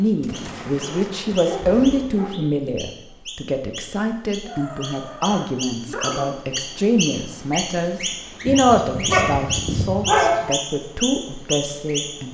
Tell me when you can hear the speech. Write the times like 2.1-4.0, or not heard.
0.0-12.2.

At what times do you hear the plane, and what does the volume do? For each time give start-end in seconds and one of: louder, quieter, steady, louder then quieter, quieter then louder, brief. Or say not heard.
not heard.